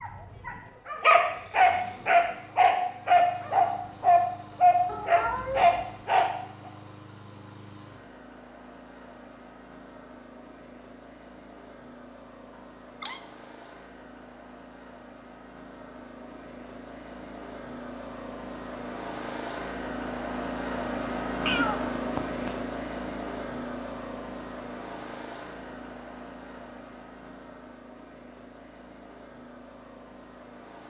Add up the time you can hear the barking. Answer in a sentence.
The barking can be heard for 6 seconds in total.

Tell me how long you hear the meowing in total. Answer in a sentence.
The meowing can be heard for 3 seconds in total.